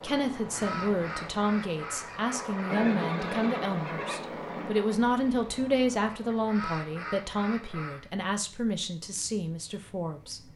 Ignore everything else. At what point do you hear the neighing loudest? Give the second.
3 s.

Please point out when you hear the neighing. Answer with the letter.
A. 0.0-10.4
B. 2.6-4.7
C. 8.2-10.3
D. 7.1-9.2
B.